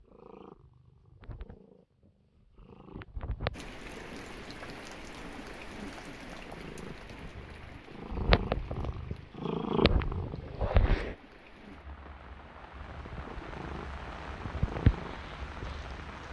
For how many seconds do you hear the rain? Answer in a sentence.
You can hear the rain for 13 seconds altogether.